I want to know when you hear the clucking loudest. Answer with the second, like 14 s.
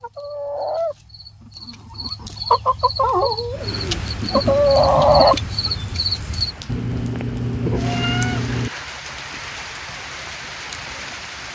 5 s.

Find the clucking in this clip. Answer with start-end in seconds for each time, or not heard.
0.0-6.5.